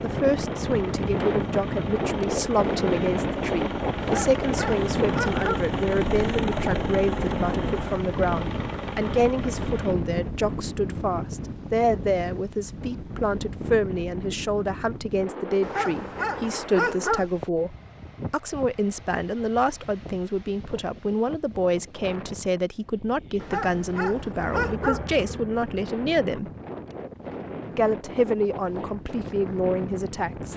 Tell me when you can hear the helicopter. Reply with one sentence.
The helicopter can be heard from 0.0 to 9.9 s and from 24.4 to 26.4 s.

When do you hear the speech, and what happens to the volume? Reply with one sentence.
You can hear the speech from 0.0 to 26.5 s, at a steady volume; and briefly from 27.7 to 30.5 s.